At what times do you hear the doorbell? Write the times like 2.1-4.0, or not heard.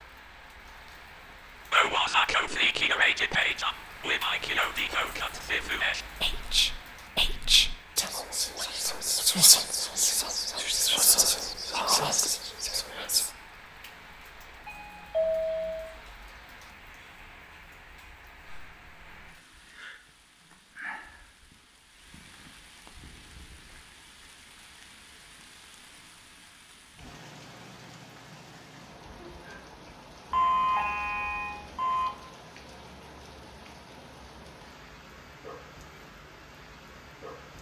14.7-15.9, 30.3-32.1.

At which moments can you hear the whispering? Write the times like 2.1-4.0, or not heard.
1.7-13.3.